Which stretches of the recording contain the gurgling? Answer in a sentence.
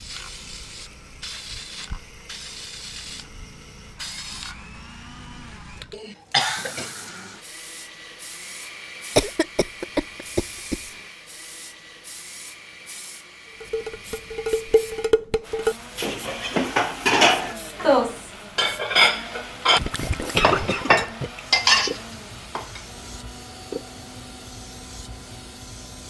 The gurgling can be heard from 19.8 to 21.4 s.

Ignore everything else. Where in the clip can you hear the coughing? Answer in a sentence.
You can hear the coughing from 5.9 to 6.9 s, from 9.2 to 10.8 s and from 20.2 to 21.1 s.